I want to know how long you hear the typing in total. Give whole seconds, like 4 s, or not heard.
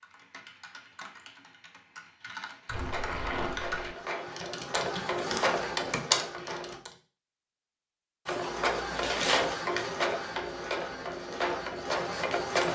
7 s.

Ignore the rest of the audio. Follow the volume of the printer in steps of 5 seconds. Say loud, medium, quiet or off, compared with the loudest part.
medium, loud, loud.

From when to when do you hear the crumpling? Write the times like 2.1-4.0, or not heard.
2.6-4.0.